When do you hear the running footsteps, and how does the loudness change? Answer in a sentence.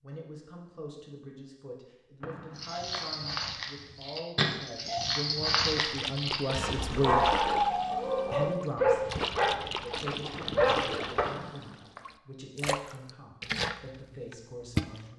You can't hear the running footsteps here.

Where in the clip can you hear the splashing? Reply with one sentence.
You can hear the splashing from 5.7 to 15.1 s.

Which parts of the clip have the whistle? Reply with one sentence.
You can hear the whistle from 2.2 to 3.5 s and from 11.2 to 12.1 s.